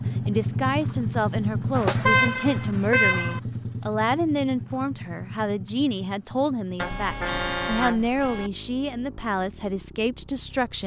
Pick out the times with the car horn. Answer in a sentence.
You can hear the car horn from 1.8 to 3.4 s and from 6.8 to 8.5 s.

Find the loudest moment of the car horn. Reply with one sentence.
The volume of the car horn peaks at 2 seconds.